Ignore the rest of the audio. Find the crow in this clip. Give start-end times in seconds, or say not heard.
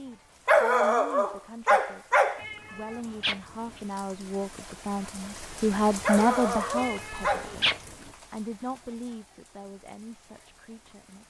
not heard.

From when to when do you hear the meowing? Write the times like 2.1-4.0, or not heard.
2.4-3.8, 6.8-7.8.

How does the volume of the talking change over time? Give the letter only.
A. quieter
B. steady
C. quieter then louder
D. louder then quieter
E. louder
D.